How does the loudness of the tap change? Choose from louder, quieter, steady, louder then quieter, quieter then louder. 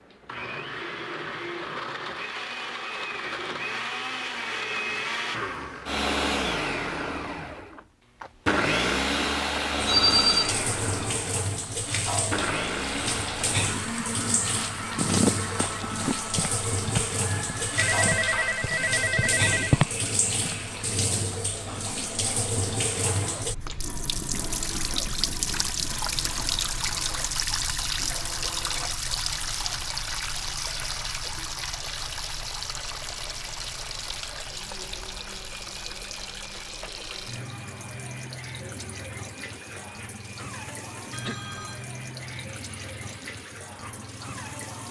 quieter.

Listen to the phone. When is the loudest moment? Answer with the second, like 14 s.
10 s.